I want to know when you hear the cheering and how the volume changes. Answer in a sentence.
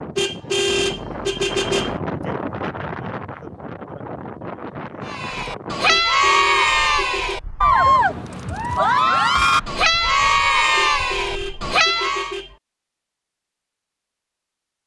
You can hear the cheering from 5.0 to 12.3 s, at a steady volume.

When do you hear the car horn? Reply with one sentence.
The car horn can be heard from 0.1 to 1.9 s, from 5.8 to 7.4 s and from 10.9 to 12.6 s.